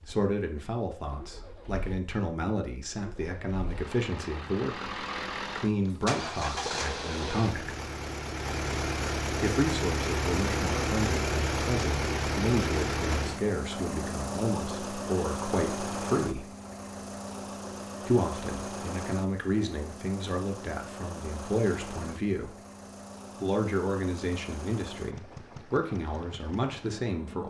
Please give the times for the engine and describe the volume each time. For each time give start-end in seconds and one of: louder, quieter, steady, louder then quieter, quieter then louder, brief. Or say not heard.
0.0-27.4 louder then quieter.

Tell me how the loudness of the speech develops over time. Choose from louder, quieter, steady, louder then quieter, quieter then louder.
steady.